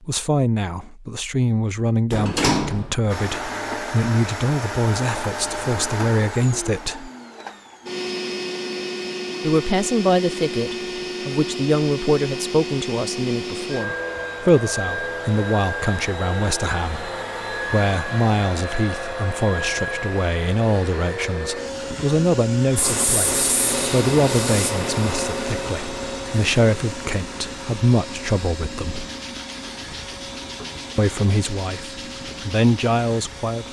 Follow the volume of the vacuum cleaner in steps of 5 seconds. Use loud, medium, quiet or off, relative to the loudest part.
loud, loud, loud, loud, loud, medium, medium.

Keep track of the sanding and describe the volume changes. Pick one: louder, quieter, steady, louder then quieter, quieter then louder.
quieter.